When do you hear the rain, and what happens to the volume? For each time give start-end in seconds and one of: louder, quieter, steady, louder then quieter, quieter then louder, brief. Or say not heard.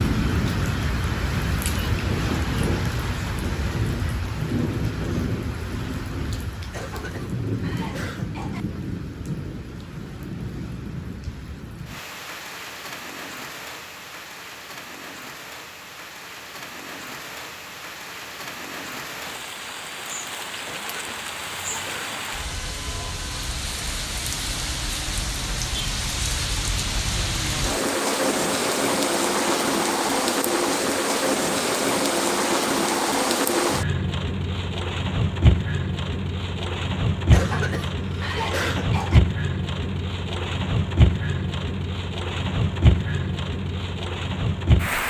0.0-45.0 quieter then louder.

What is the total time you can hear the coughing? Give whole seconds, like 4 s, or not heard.
6 s.